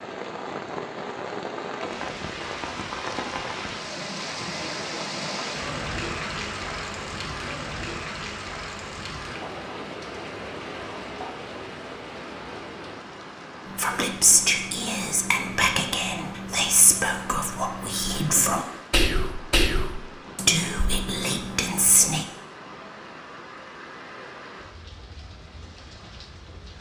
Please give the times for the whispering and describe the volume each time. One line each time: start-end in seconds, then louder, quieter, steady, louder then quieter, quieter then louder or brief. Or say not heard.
13.7-22.2 steady.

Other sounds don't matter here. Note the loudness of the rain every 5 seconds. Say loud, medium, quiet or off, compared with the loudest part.
loud, loud, medium, medium, medium, quiet.